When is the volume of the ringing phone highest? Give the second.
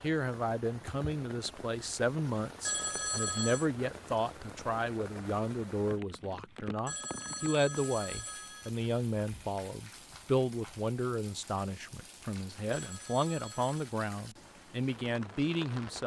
3 s.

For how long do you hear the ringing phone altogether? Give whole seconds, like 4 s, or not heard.
4 s.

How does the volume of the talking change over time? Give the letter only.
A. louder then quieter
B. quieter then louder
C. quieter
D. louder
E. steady
E.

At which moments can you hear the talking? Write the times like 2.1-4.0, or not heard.
0.0-16.0.